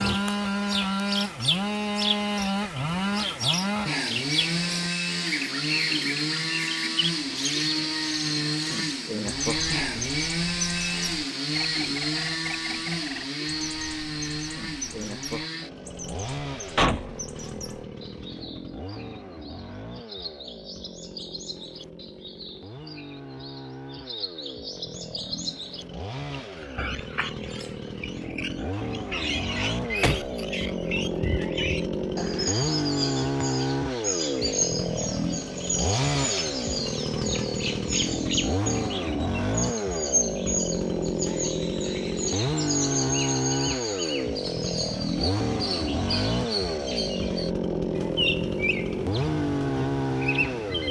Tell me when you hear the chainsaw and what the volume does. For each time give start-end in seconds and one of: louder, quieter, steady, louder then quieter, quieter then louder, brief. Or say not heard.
0.0-50.8 quieter then louder.